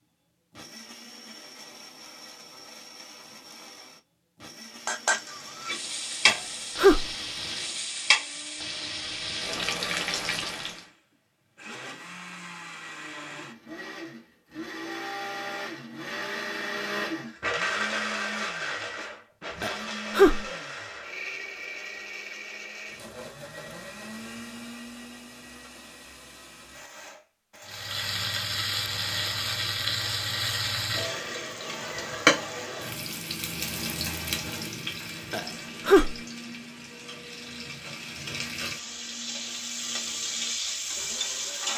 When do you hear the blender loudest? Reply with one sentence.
The volume of the blender peaks at 18 seconds.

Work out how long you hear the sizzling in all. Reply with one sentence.
You can hear the sizzling for 20 seconds altogether.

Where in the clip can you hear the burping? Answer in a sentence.
You can hear the burping from 6.2 to 7.0 s, from 19.6 to 20.4 s and from 35.3 to 36.1 s.